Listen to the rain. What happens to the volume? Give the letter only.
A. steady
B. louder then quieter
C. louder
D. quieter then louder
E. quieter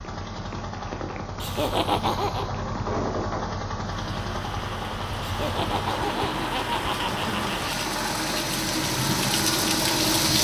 C.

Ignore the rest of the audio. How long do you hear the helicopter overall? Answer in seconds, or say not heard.
10 s.